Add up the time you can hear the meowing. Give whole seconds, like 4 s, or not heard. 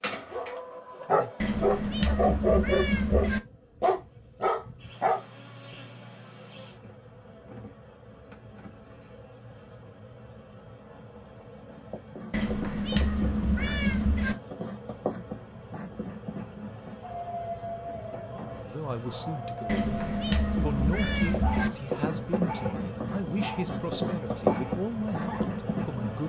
6 s.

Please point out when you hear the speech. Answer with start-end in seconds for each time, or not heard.
18.6-26.2.